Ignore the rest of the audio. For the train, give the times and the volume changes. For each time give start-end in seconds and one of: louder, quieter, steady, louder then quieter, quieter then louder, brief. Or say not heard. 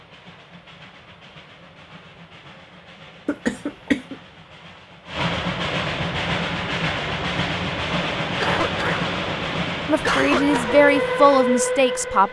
0.0-12.2 louder.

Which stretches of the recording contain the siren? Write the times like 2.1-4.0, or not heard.
not heard.